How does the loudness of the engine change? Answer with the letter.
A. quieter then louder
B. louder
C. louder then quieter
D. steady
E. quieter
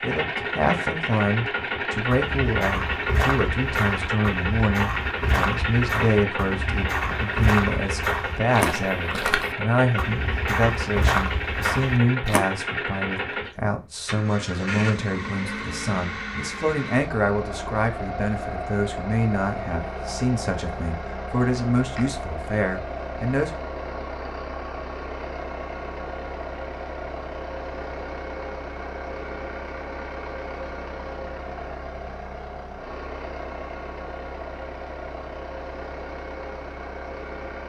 E.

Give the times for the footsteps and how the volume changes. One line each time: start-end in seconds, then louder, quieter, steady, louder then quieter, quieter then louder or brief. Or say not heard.
1.9-12.4 steady.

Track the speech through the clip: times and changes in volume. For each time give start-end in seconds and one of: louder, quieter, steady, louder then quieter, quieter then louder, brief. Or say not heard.
0.0-23.5 steady.